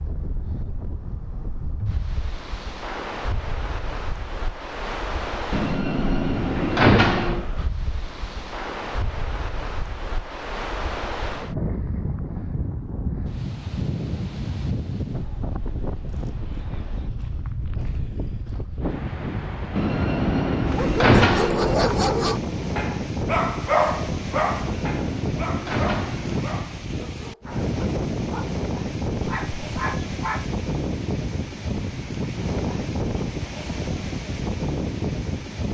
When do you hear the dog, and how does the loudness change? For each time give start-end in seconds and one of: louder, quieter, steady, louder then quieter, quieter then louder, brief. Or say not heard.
20.6-30.4 quieter then louder.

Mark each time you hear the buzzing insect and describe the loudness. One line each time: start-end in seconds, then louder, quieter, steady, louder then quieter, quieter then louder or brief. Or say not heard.
not heard.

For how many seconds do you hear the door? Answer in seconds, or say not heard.
6 s.